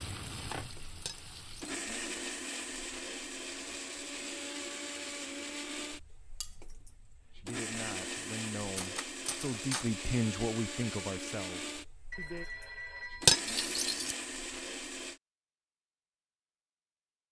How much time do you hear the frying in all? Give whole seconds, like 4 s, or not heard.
2 s.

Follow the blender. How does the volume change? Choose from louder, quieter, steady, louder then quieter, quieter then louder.
steady.